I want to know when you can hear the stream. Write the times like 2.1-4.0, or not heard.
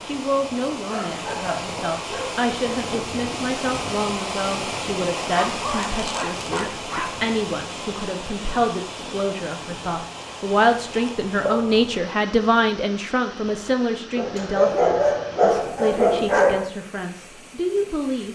0.0-18.3.